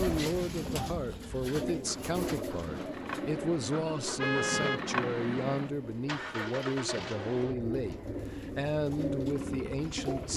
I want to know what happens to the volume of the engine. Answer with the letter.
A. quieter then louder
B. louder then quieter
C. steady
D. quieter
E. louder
B.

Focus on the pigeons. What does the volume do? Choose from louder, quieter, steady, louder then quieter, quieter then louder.
quieter then louder.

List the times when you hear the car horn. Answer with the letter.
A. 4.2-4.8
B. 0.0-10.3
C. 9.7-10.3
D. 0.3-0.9
A.